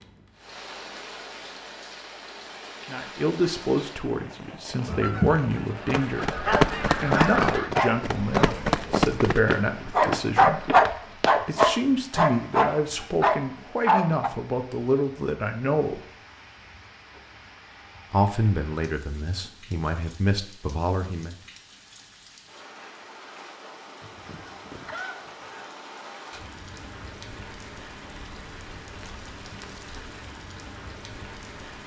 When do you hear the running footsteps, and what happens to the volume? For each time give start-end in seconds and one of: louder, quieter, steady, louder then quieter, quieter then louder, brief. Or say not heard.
5.0-11.8 quieter.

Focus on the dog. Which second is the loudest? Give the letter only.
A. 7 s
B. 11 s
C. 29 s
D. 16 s
B.